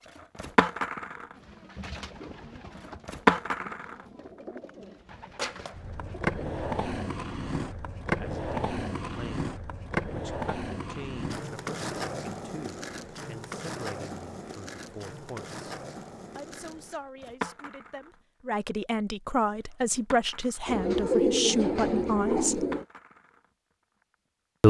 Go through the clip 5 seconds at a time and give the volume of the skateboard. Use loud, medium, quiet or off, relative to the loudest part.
loud, medium, medium, quiet, quiet.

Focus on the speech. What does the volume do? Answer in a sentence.
The loudness of the speech goes up.